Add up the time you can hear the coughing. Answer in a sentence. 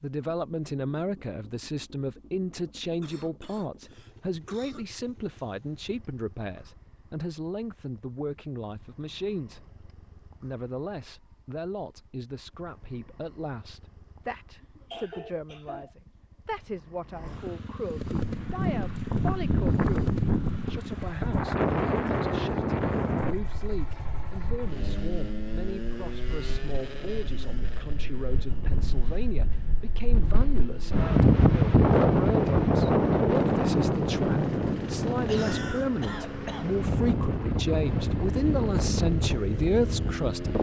You can hear the coughing for 5 seconds altogether.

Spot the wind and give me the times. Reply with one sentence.
The wind can be heard from 17.9 to 40.5 s.